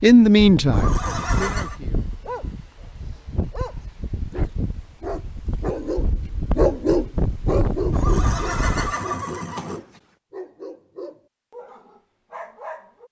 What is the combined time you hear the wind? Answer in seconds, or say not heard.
9 s.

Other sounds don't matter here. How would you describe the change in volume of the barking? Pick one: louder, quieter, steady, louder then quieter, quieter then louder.
louder then quieter.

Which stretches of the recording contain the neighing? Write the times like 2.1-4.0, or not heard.
0.7-1.8, 7.9-10.0.